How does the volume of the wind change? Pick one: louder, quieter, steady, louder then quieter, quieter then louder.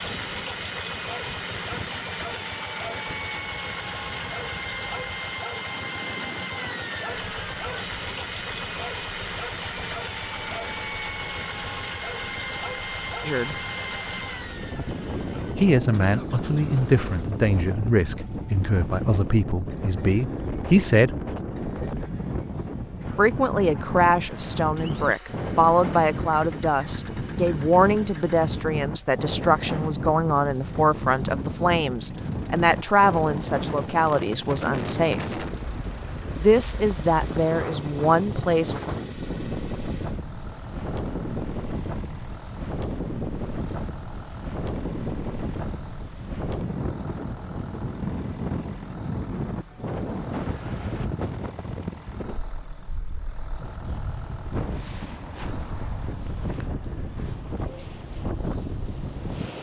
louder.